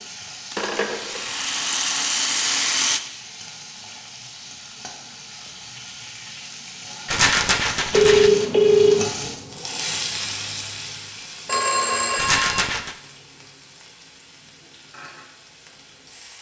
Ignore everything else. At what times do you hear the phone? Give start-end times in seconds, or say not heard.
0.6-1.2, 7.9-9.1, 11.4-12.6.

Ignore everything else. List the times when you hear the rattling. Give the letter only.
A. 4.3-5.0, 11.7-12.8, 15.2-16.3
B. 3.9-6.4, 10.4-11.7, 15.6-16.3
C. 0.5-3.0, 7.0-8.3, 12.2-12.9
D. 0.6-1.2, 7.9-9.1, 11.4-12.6
C.